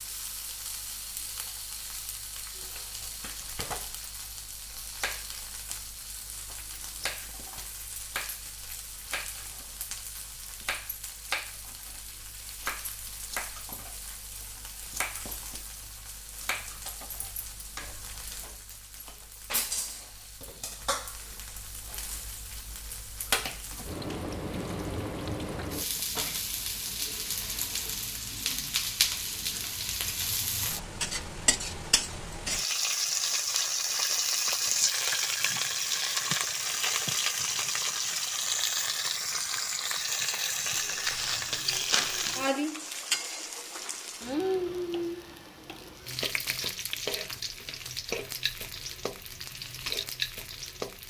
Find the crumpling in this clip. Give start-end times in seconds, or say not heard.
40.7-42.5.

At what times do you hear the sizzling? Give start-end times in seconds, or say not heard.
0.0-51.0.